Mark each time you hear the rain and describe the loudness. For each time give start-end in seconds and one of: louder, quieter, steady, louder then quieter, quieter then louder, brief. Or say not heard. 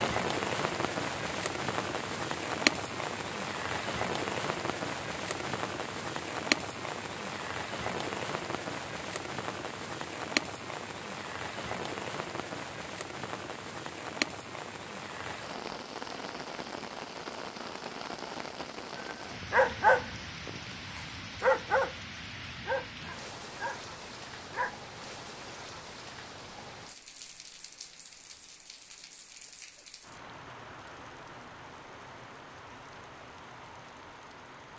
0.0-34.7 quieter.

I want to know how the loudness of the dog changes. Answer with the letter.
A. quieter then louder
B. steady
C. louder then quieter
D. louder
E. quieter
E.